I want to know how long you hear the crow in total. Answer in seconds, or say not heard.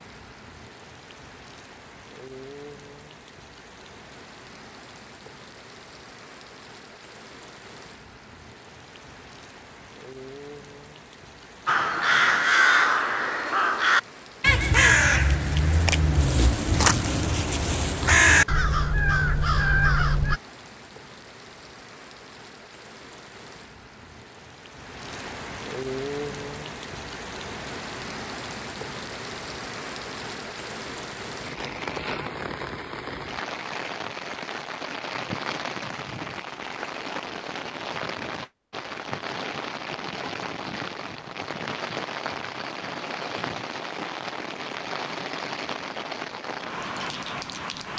9 s.